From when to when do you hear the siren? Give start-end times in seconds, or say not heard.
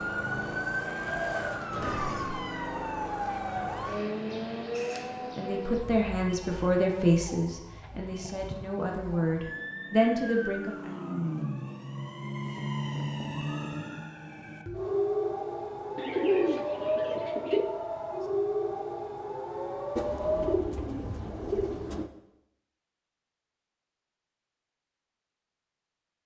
0.0-20.6.